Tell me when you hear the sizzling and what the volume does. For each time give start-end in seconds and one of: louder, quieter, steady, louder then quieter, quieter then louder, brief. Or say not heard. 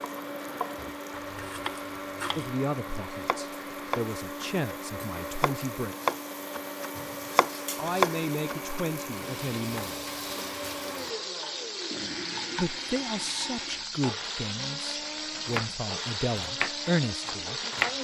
0.0-18.0 louder.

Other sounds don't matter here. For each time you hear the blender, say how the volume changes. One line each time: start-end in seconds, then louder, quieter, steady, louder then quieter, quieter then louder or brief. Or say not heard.
0.0-18.0 steady.